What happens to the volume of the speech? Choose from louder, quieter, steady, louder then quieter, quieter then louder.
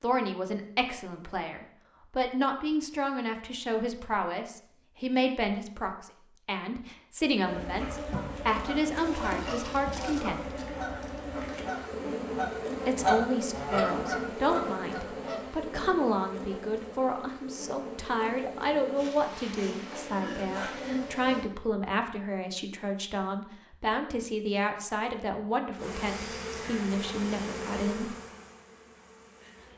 steady.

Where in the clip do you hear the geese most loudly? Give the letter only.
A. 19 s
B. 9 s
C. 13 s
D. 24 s
C.